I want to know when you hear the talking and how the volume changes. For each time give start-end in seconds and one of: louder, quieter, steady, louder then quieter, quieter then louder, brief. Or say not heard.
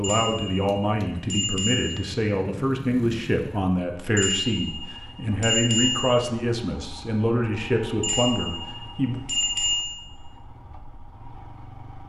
0.0-9.2 steady.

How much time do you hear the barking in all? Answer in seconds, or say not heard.
not heard.